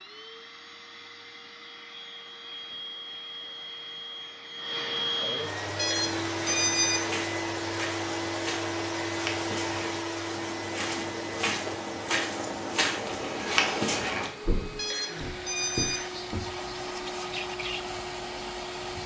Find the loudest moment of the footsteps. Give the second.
14 s.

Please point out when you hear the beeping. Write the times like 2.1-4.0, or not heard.
5.8-7.1, 14.8-16.1.